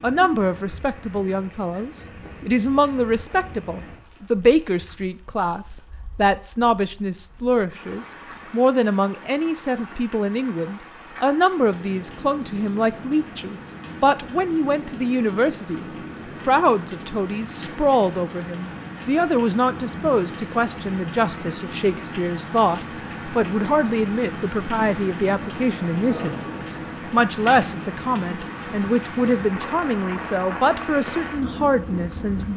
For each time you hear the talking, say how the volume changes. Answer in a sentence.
You can hear the talking from 0.0 to 15.8 s, at a steady volume; and from 16.4 to 32.5 s, at a steady volume.